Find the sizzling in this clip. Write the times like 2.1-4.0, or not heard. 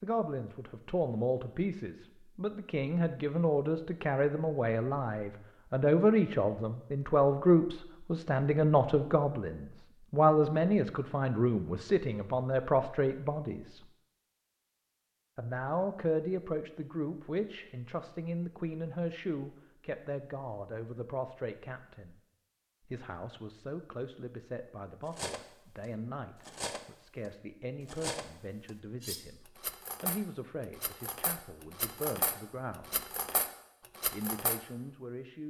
not heard.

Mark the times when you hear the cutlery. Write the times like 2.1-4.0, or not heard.
25.1-34.6.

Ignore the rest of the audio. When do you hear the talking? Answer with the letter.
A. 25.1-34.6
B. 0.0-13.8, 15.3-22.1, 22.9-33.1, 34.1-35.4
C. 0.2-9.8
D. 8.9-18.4
B.